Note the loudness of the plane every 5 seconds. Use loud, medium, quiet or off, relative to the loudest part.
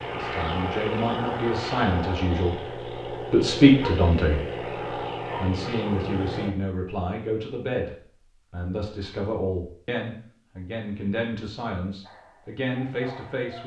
loud, loud, off.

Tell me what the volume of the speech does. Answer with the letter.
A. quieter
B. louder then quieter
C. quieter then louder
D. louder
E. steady
B.